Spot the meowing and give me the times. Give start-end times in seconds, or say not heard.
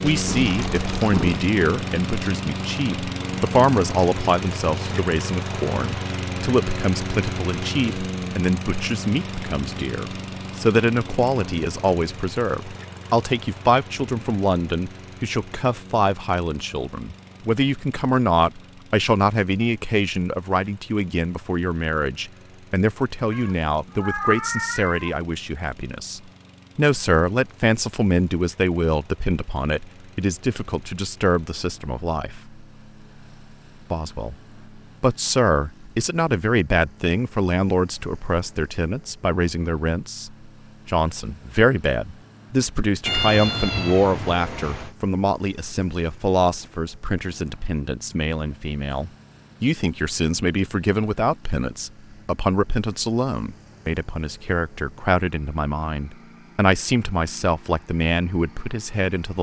0.1-1.4, 23.3-25.1, 43.0-45.0.